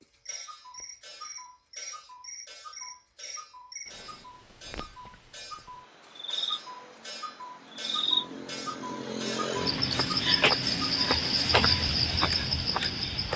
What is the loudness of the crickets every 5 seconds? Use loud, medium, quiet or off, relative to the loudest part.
quiet, medium, loud.